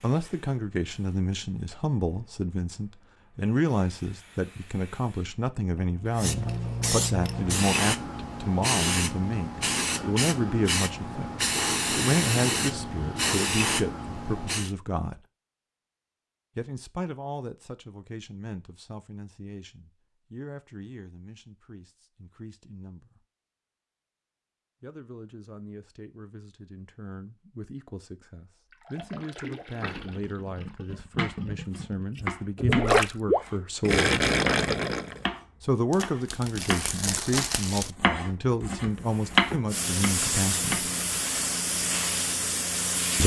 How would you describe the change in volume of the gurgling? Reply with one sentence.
The loudness of the gurgling goes up.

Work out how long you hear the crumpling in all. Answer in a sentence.
The crumpling can be heard for 2 seconds in total.